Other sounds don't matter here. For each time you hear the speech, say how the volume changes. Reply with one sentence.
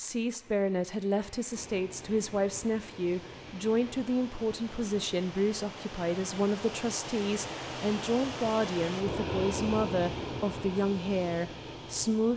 You can hear the speech from 0.0 to 12.3 s, at a steady volume.